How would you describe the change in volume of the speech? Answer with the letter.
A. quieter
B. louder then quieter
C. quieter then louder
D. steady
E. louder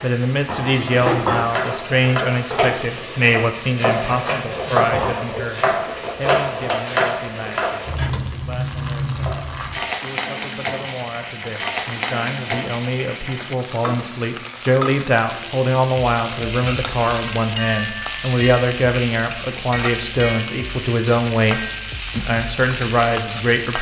C.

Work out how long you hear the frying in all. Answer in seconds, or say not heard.
24 s.